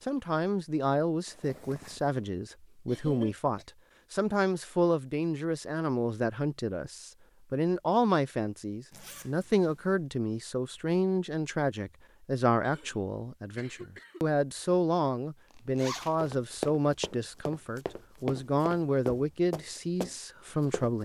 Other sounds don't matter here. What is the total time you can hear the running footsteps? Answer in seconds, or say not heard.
5 s.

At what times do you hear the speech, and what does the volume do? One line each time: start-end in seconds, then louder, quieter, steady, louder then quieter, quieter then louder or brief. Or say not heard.
0.0-21.0 steady.